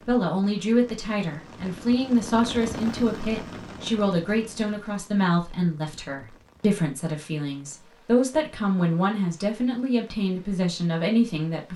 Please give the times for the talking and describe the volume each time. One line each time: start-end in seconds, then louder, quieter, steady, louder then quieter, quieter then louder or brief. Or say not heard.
0.0-11.7 steady.